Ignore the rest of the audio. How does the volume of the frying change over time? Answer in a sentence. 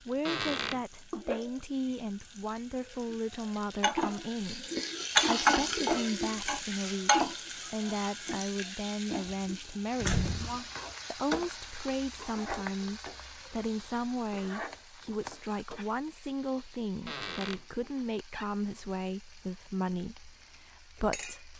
The volume of the frying goes up, then down.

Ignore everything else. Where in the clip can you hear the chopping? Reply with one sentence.
You can't hear the chopping here.